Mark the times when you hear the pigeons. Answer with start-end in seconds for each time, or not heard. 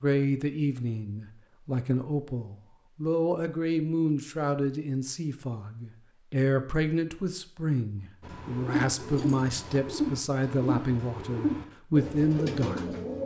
8.2-13.2.